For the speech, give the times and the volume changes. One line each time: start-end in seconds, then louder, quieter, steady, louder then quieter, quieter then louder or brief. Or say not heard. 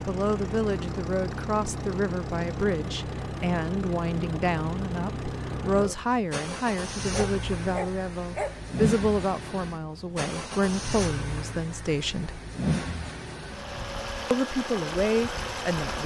0.1-12.4 steady
14.3-16.0 brief.